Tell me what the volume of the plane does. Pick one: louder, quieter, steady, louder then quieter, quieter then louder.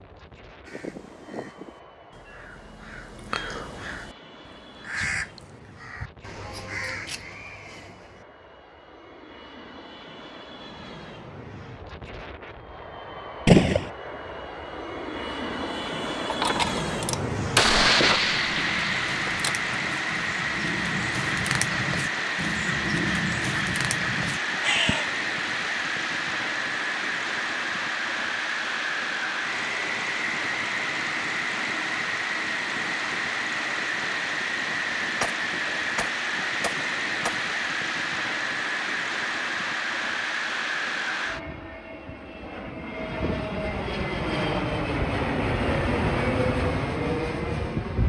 louder.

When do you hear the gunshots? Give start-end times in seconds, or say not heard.
13.4-13.9, 16.2-19.7, 35.2-37.5.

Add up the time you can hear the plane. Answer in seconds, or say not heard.
48 s.